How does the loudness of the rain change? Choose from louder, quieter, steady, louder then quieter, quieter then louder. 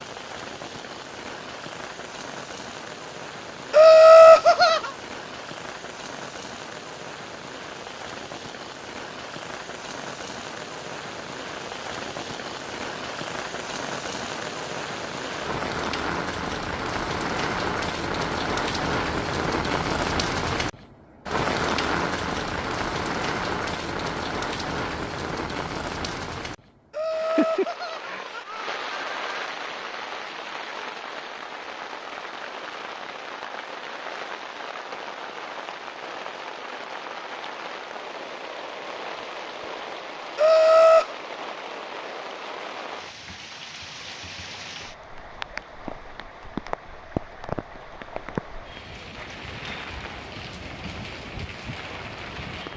louder then quieter.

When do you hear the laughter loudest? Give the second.
4 s.